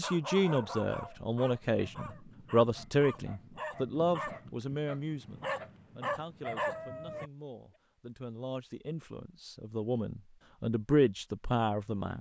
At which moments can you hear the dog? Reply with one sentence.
The dog can be heard from 0.0 to 7.3 s.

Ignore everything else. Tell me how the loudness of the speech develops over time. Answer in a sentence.
The volume of the speech goes down, then up.